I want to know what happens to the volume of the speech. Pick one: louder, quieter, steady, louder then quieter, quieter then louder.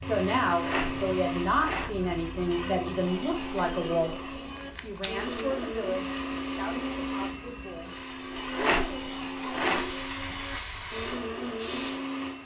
quieter.